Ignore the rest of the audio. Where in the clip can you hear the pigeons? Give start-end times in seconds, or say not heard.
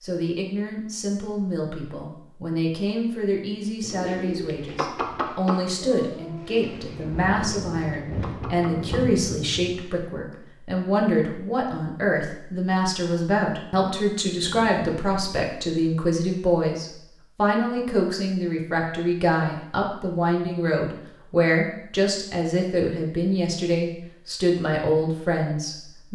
3.8-9.2.